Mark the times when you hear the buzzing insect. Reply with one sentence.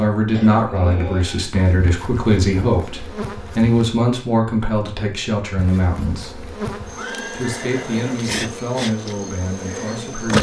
You can hear the buzzing insect from 1.6 to 3.9 s and from 5.5 to 10.3 s.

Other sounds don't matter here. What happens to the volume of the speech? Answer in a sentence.
The loudness of the speech goes down.